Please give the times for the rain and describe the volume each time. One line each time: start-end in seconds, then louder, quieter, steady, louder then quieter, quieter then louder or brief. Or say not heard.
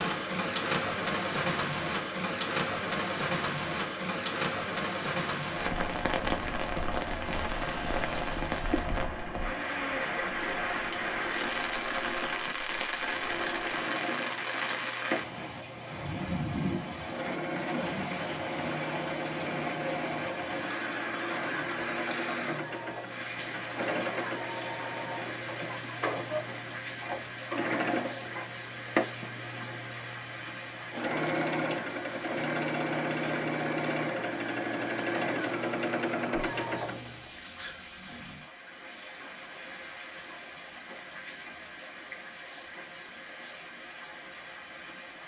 0.0-45.2 quieter.